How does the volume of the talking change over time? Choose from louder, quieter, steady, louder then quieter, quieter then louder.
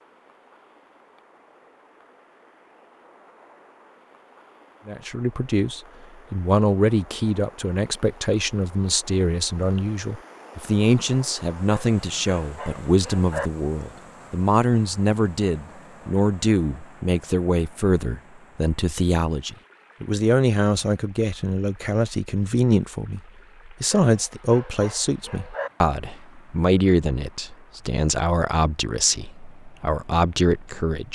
steady.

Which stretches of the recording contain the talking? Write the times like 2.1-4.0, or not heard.
4.8-31.1.